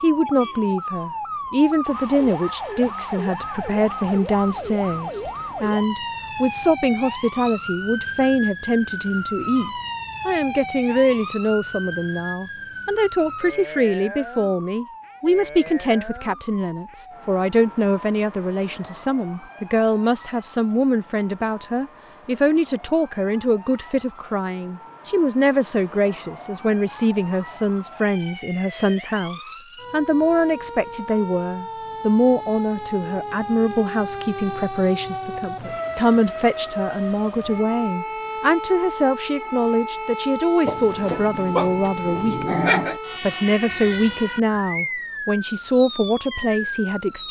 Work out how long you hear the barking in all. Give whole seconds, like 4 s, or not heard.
2 s.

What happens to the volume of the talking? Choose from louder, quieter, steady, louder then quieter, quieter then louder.
steady.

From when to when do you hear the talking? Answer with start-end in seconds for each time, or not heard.
0.0-47.2.